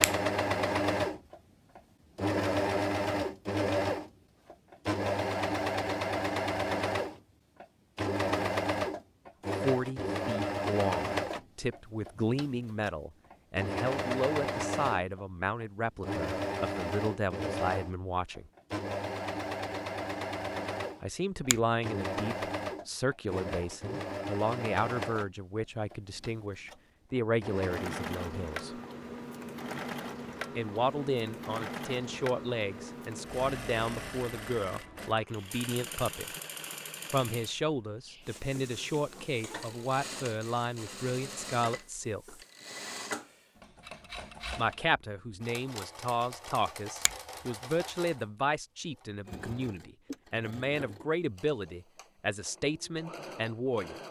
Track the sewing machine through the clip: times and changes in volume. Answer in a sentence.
The sewing machine can be heard from 0.0 to 54.0 s, getting quieter.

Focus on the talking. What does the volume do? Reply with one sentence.
The loudness of the talking stays about the same.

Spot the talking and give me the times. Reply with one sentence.
The talking can be heard from 9.6 to 18.5 s, from 21.0 to 28.8 s, from 30.6 to 36.3 s, from 37.1 to 42.4 s and from 44.5 to 54.0 s.